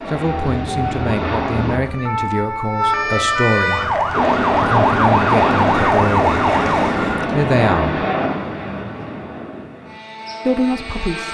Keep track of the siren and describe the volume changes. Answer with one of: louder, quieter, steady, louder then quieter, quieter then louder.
louder.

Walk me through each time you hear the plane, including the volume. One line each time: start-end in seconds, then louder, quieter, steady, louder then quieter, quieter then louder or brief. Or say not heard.
0.0-1.8 brief
4.1-11.2 quieter.